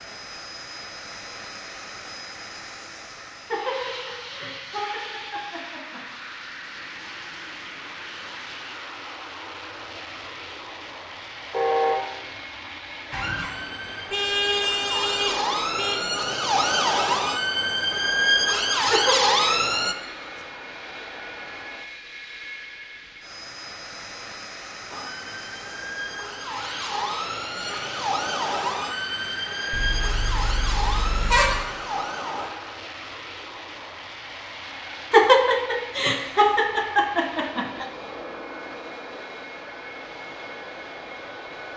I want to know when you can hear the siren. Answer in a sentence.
The siren can be heard from 13.1 to 19.9 s and from 24.9 to 32.5 s.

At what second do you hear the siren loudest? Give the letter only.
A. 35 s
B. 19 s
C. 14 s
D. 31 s
B.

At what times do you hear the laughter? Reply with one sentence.
You can hear the laughter from 3.5 to 6.0 s, from 18.9 to 19.6 s and from 35.1 to 37.9 s.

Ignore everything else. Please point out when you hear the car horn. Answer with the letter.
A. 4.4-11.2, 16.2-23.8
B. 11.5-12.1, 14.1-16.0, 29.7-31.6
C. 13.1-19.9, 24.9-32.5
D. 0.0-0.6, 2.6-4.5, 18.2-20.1
B.